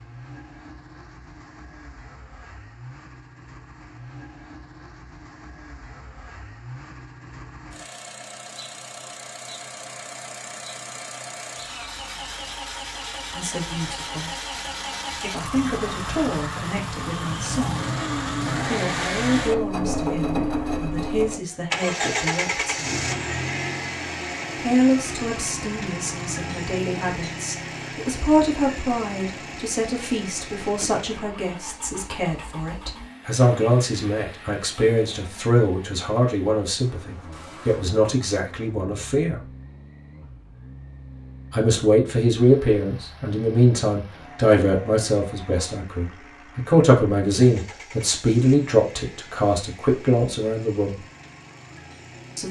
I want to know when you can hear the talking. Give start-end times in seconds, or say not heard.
13.3-14.3, 15.2-17.8, 18.6-23.0, 24.6-39.5, 41.5-51.0.